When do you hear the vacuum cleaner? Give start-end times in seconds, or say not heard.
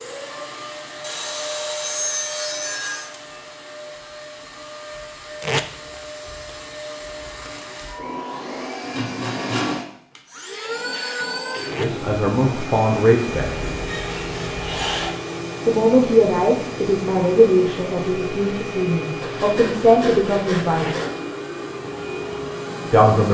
0.0-23.2.